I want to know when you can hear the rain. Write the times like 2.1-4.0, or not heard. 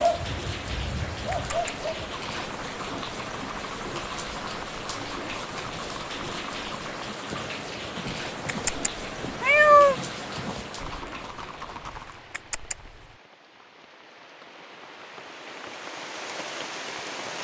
0.0-17.3.